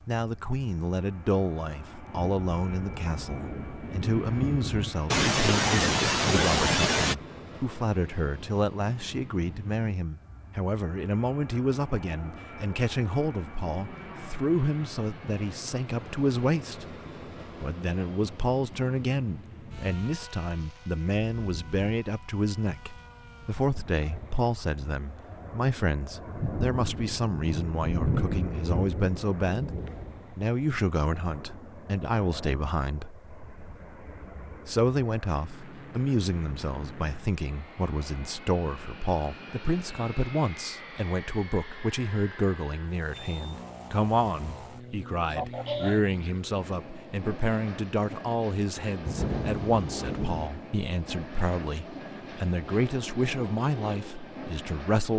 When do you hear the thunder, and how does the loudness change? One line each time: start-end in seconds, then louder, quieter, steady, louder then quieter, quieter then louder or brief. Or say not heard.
2.1-5.0 brief
26.1-30.4 louder then quieter
49.0-50.5 brief.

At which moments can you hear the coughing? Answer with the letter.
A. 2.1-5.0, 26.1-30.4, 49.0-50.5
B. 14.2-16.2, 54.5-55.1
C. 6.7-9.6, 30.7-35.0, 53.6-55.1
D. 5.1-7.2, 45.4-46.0
D.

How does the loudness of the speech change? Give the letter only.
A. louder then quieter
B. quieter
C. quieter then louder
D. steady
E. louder
D.